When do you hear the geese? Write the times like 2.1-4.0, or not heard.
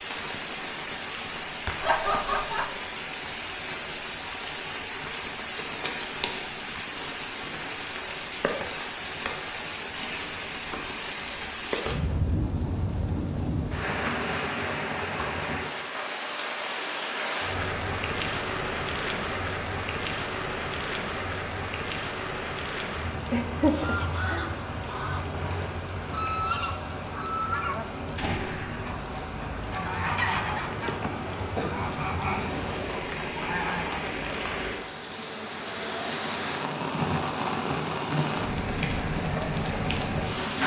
23.6-34.0.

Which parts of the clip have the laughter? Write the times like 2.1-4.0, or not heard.
1.8-2.7, 23.3-24.5, 30.8-31.9.